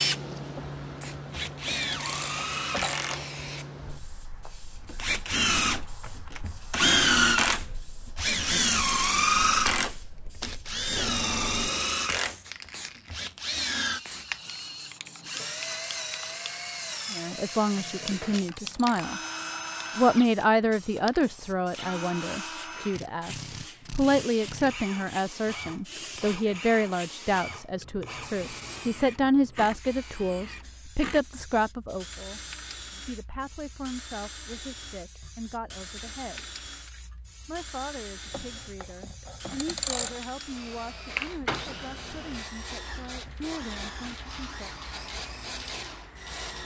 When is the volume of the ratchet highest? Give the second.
40 s.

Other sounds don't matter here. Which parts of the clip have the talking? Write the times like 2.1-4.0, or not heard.
17.1-19.2, 19.9-36.6, 37.5-44.7.